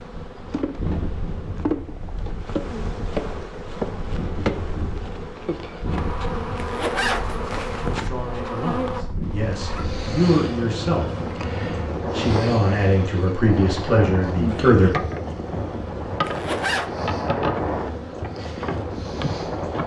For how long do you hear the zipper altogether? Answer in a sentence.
You can hear the zipper for 2 seconds altogether.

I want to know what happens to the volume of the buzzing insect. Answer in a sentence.
The loudness of the buzzing insect stays about the same.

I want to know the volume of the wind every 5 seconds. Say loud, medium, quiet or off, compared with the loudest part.
medium, medium, loud, loud.